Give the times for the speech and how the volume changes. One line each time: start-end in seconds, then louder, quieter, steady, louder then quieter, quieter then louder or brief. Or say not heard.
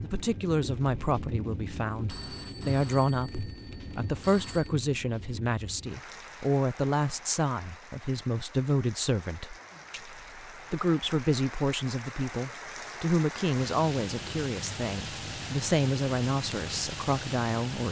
0.0-17.8 steady.